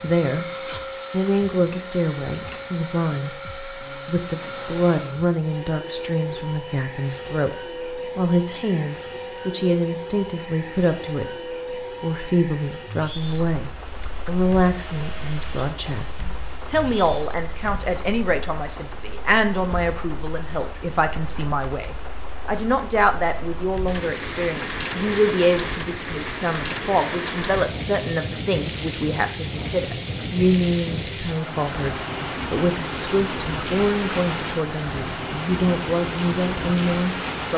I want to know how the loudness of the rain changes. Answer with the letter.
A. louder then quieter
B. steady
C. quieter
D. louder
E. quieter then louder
D.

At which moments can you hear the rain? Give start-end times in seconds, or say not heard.
13.2-37.5.